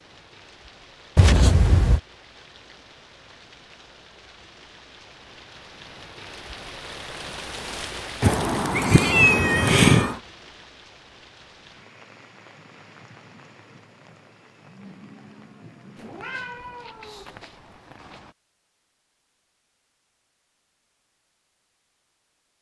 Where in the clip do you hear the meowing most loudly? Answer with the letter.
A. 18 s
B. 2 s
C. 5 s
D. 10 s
D.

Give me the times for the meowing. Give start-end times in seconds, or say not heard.
1.1-2.0, 8.2-10.2, 15.9-18.2.